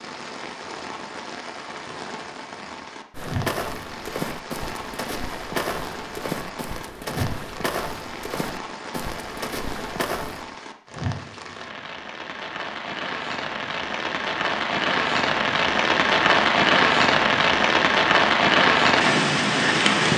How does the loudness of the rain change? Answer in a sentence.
The volume of the rain goes up.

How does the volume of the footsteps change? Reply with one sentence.
The loudness of the footsteps stays about the same.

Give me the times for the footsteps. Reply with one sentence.
The footsteps can be heard from 3.1 to 10.4 s.